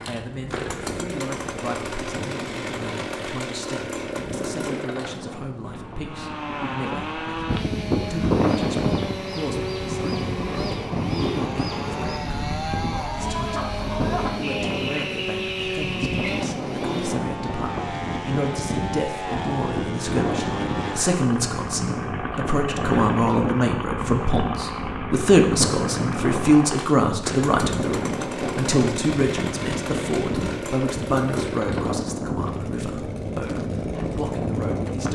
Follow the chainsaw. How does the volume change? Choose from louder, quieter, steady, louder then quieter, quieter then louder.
steady.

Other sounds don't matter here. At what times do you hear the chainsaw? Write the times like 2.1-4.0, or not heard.
0.0-35.1.